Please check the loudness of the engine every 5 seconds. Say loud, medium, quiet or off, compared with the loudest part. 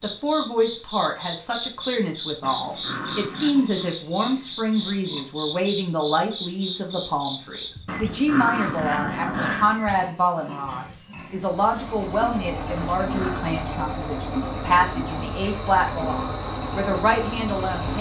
off, off, loud, loud.